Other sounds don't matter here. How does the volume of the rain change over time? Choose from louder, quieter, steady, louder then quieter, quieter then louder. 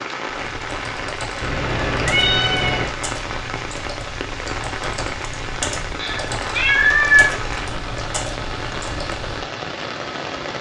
steady.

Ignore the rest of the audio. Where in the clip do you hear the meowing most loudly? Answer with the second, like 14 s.
7 s.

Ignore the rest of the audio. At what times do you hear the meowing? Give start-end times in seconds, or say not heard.
1.4-2.9, 6.0-8.0.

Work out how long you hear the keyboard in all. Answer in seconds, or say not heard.
9 s.